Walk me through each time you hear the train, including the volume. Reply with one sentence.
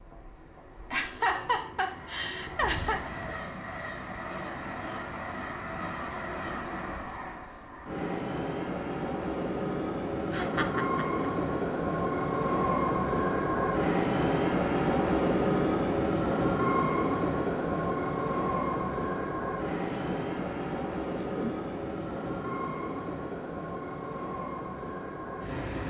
You can hear the train from 0.0 to 25.8 s, getting louder then quieter.